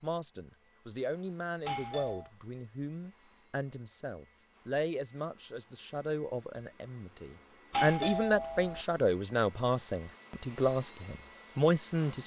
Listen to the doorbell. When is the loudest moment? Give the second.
8 s.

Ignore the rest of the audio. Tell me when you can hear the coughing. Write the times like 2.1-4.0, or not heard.
not heard.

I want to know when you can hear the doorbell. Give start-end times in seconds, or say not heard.
1.6-2.3, 7.7-8.8.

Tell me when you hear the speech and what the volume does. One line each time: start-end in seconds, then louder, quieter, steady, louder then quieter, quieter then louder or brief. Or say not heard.
0.0-12.2 louder.